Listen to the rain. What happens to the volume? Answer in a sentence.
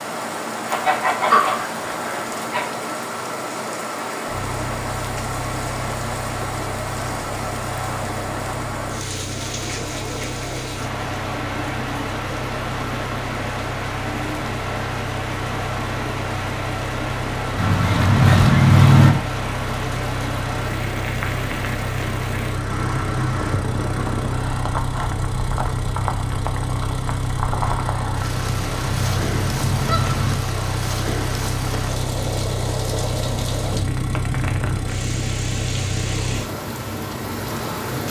The volume of the rain stays about the same.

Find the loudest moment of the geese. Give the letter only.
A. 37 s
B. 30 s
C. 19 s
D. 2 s
C.